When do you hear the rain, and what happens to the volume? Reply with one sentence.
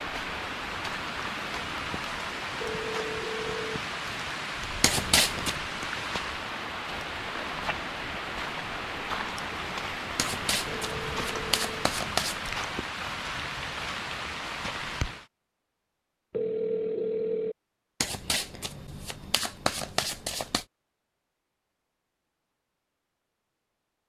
You can hear the rain from 0.0 to 15.2 s, at a steady volume.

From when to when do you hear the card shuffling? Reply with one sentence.
The card shuffling can be heard from 4.8 to 5.5 s, from 10.2 to 12.5 s and from 18.0 to 20.6 s.